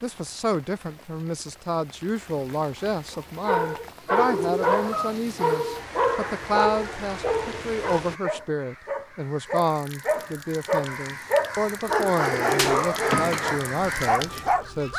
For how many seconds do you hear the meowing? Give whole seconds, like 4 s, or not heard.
2 s.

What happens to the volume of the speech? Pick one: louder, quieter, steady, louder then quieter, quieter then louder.
steady.